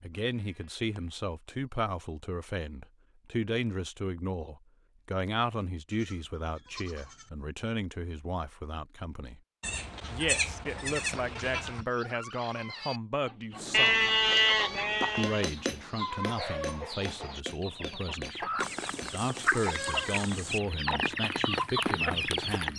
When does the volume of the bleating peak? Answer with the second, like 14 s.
14 s.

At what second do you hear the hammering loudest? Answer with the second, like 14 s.
16 s.